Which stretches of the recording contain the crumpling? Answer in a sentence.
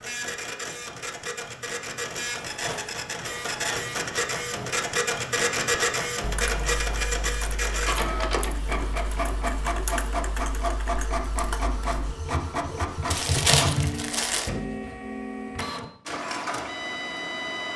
The crumpling can be heard from 2.3 to 3.9 s and from 13.1 to 14.5 s.